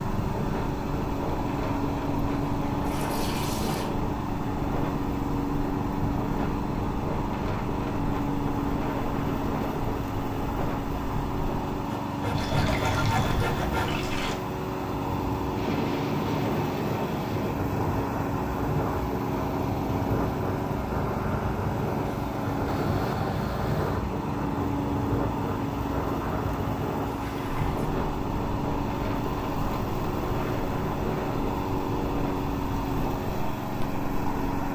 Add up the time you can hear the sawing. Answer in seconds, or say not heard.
2 s.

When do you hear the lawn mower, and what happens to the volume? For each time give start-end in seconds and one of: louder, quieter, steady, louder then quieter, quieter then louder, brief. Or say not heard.
0.0-34.6 steady.